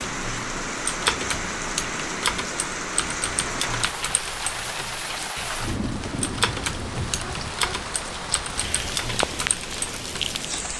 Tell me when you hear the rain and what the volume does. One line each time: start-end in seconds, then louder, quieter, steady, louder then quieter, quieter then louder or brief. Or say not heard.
0.0-10.7 steady.